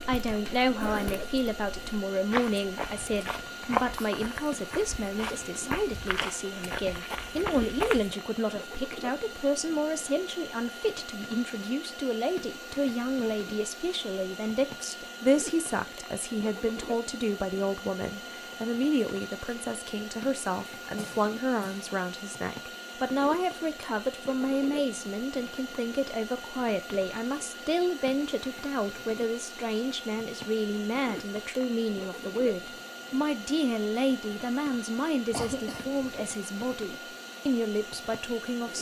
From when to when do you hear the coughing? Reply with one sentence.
The coughing can be heard from 0.8 to 1.4 s, from 20.8 to 21.8 s and from 35.3 to 36.2 s.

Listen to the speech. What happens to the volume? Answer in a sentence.
The volume of the speech stays about the same.